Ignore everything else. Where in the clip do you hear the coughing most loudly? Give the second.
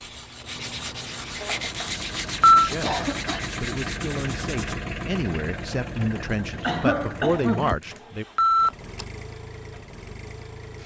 7 s.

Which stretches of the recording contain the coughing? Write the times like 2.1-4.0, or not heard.
1.4-1.9, 2.7-3.4, 6.6-7.8.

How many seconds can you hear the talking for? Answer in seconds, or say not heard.
6 s.